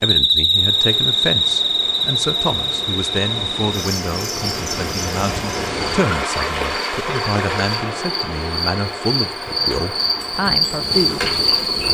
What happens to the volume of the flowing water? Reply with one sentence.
The loudness of the flowing water goes up, then down.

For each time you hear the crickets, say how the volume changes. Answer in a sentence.
You can hear the crickets from 0.0 to 11.9 s, getting quieter then louder.